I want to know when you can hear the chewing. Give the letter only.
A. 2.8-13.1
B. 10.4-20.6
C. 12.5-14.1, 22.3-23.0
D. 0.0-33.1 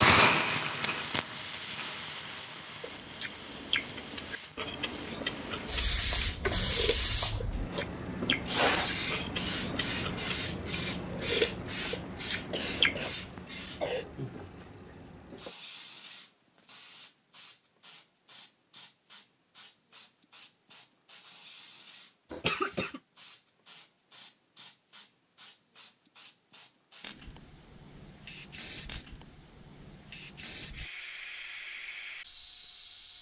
A.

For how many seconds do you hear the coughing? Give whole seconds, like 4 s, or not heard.
2 s.